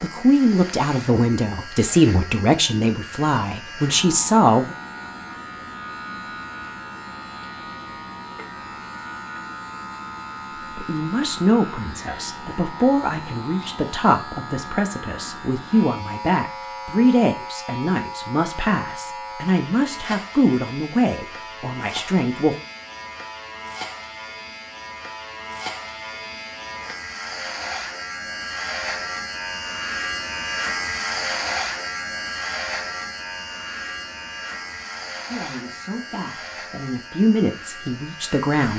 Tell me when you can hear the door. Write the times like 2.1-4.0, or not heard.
not heard.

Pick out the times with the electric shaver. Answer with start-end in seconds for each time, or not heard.
0.0-38.7.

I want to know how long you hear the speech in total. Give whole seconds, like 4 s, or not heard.
20 s.